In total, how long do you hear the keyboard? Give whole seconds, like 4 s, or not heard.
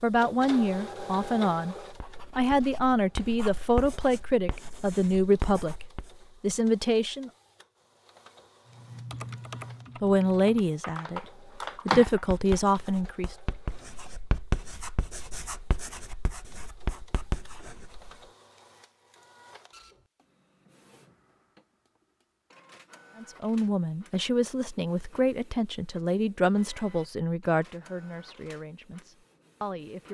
4 s.